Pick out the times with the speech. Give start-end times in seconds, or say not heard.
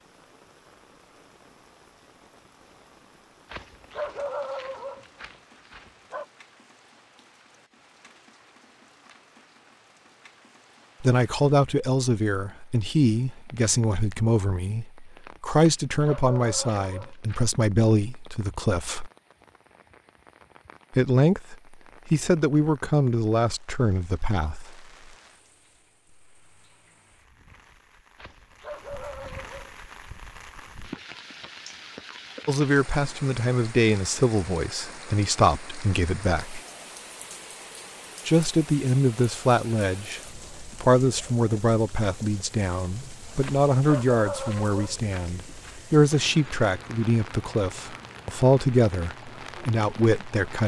11.0-19.1, 20.9-24.9, 32.5-36.6, 38.2-50.6.